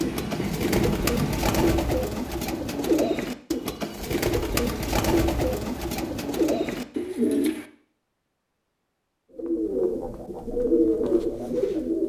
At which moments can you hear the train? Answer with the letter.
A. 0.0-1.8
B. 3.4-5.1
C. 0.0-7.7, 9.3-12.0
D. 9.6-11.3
A.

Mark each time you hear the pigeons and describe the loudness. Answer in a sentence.
You can hear the pigeons from 0.0 to 7.7 s, at a steady volume; and briefly from 9.3 to 12.0 s.